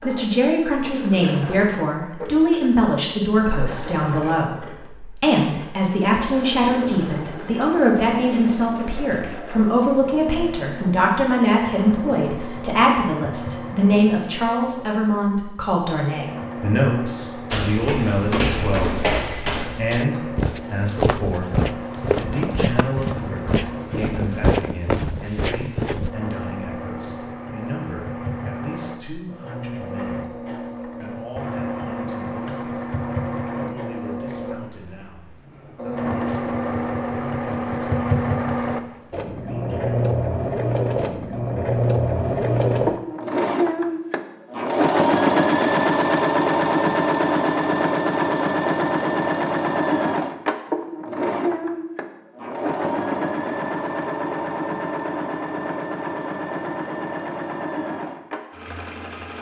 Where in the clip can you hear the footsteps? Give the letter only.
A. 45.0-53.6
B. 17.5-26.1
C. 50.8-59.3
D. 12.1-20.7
B.